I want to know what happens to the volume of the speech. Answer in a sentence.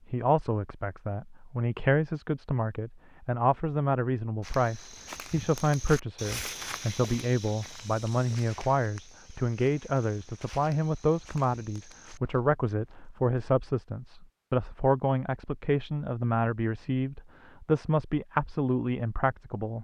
The loudness of the speech stays about the same.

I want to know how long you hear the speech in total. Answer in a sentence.
The speech can be heard for 20 seconds in total.